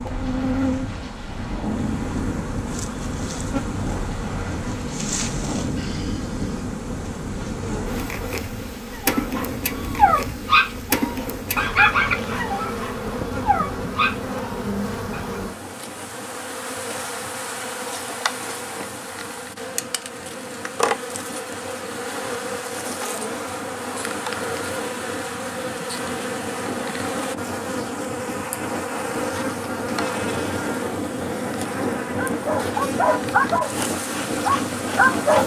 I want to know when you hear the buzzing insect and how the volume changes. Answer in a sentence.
The buzzing insect can be heard from 0.0 to 35.4 s, at a steady volume.